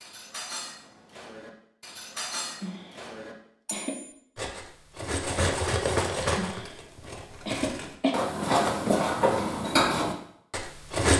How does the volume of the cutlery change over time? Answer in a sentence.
The loudness of the cutlery goes up.